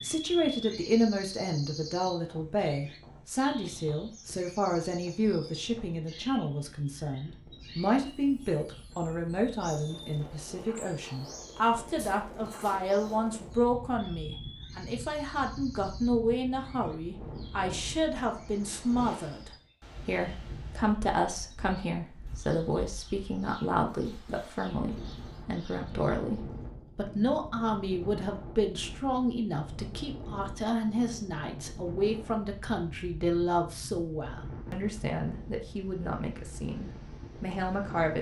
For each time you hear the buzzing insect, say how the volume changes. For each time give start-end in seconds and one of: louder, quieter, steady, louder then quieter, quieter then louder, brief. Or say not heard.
not heard.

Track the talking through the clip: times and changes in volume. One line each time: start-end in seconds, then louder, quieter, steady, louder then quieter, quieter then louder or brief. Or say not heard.
0.0-38.1 steady.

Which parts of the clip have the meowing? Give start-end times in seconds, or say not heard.
not heard.